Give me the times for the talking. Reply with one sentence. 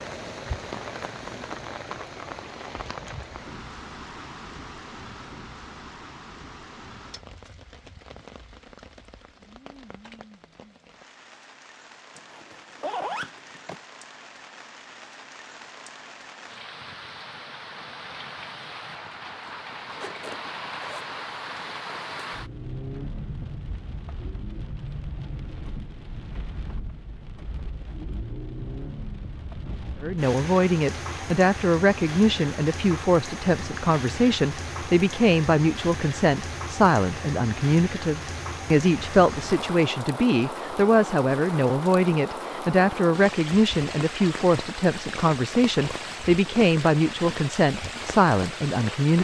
You can hear the talking from 30.0 to 49.1 s.